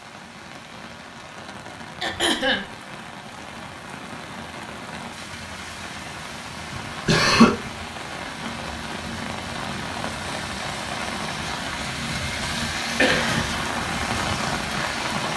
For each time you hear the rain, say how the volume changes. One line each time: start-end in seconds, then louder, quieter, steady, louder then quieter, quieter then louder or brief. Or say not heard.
0.0-15.3 louder.